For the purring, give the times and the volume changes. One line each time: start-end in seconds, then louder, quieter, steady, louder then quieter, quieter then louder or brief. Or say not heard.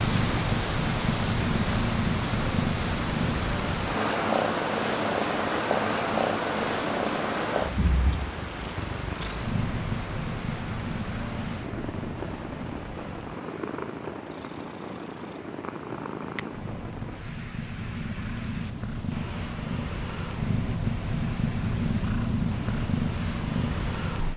0.0-24.3 quieter then louder.